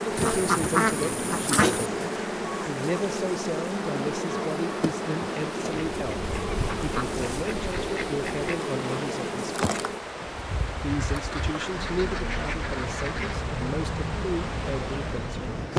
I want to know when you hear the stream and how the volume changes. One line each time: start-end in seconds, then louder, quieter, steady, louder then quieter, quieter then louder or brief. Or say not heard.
0.0-15.7 steady.